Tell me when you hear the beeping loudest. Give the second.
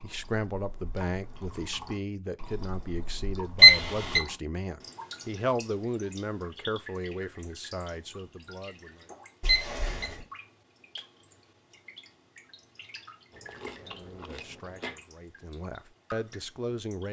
4 s.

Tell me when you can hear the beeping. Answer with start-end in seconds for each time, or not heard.
3.6-4.2, 9.4-10.1.